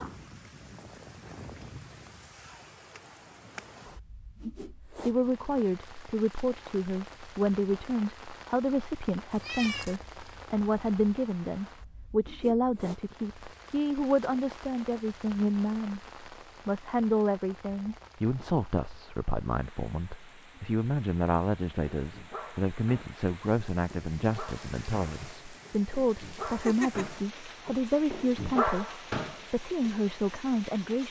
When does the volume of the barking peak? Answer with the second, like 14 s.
29 s.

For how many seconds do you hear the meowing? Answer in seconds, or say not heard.
2 s.